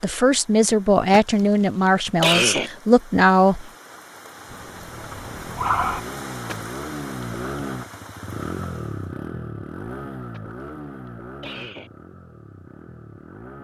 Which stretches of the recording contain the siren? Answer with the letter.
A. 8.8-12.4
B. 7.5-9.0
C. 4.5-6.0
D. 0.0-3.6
C.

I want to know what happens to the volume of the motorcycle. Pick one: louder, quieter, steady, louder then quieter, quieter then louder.
louder then quieter.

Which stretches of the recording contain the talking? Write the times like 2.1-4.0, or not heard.
0.0-3.6.